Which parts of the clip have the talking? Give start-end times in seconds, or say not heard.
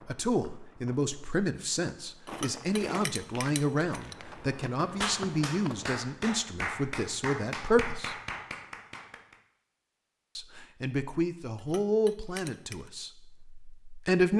0.1-8.2, 10.3-14.3.